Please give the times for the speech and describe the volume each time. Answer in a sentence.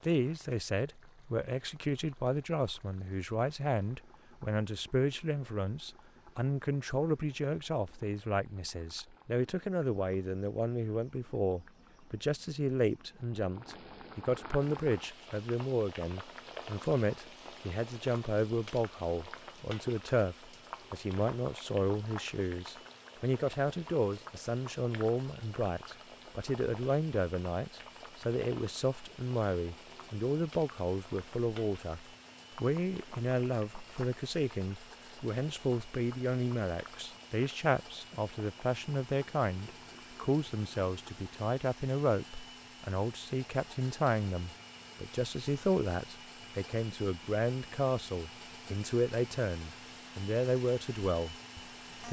You can hear the speech from 0.0 to 52.0 s, at a steady volume.